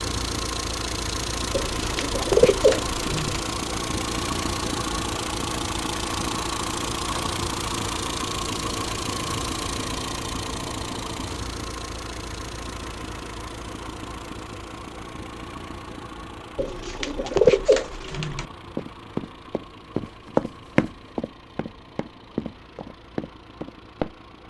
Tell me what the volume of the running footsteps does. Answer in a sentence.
The loudness of the running footsteps goes up, then down.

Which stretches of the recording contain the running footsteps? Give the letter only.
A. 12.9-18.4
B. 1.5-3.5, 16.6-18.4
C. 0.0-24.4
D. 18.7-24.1
D.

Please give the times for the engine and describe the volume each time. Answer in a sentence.
The engine can be heard from 0.0 to 24.4 s, getting quieter.